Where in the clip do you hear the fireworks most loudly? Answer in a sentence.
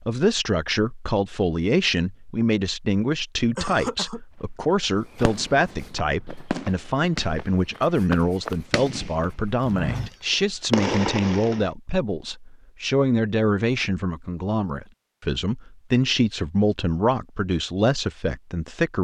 The volume of the fireworks peaks at 11 seconds.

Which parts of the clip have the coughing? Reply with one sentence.
The coughing can be heard from 3.5 to 4.2 s.